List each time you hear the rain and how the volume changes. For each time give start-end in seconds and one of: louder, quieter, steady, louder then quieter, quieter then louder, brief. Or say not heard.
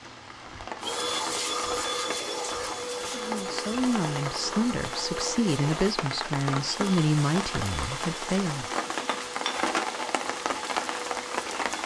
0.0-11.8 louder.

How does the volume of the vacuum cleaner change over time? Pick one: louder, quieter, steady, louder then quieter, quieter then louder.
quieter.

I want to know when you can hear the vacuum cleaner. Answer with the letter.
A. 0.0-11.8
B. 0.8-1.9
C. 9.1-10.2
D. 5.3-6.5
A.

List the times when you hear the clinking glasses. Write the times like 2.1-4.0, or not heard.
9.1-10.2.